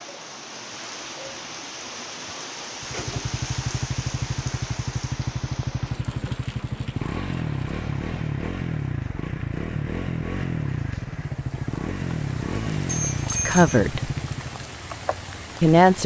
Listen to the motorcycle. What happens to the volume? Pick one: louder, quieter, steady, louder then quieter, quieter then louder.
steady.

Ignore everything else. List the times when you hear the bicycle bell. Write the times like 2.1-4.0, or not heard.
12.8-13.8.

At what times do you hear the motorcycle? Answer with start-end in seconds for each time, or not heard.
2.8-14.7.